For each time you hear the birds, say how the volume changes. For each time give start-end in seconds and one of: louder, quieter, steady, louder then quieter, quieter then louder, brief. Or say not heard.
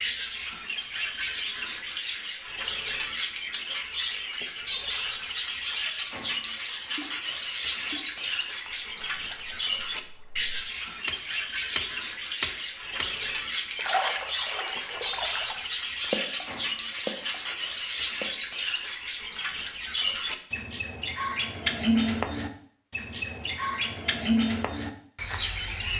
0.0-25.9 steady.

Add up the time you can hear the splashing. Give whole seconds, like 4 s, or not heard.
12 s.